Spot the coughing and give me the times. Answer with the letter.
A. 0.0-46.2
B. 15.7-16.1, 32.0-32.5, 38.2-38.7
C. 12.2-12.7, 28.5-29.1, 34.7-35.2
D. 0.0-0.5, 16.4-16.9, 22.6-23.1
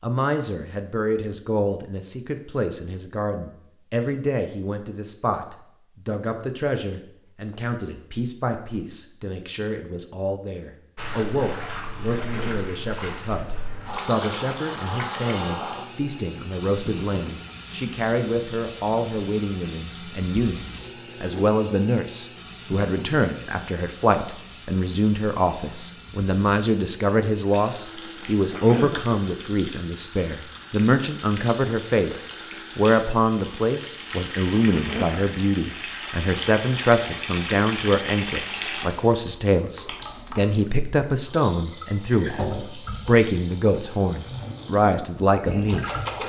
C.